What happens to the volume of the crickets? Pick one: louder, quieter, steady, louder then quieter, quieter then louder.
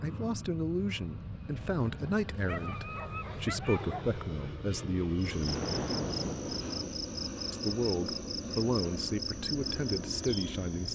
steady.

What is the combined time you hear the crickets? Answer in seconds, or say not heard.
6 s.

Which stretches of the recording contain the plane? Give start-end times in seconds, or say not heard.
0.0-10.9.